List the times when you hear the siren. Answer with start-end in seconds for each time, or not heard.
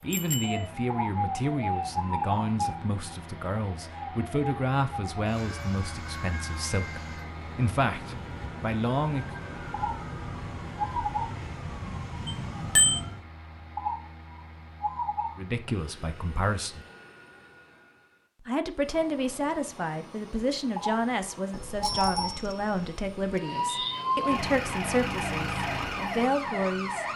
0.0-13.2, 23.3-27.1.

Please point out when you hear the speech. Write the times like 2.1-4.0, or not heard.
0.0-9.3, 15.3-16.9, 18.4-27.1.